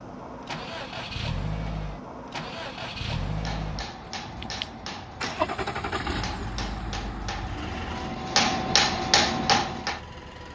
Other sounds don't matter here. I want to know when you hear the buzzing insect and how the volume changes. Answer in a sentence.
You can't hear the buzzing insect here.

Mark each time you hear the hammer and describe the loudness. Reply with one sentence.
The hammer can be heard from 3.2 to 10.0 s, getting louder.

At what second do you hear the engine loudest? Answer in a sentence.
The loudest moment of the engine is at 6 seconds.